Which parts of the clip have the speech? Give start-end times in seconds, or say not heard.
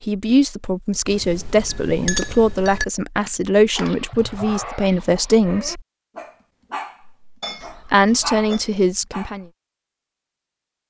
0.0-5.8, 7.8-9.4.